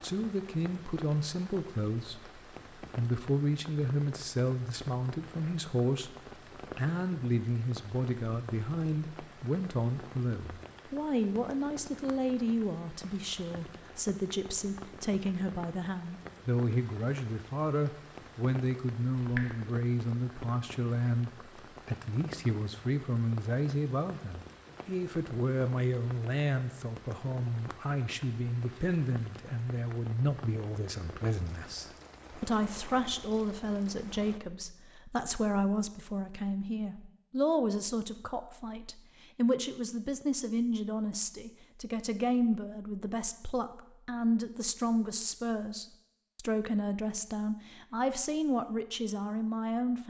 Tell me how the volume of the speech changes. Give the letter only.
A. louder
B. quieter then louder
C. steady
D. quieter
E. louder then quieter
C.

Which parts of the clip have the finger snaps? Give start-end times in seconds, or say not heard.
19.1-19.8.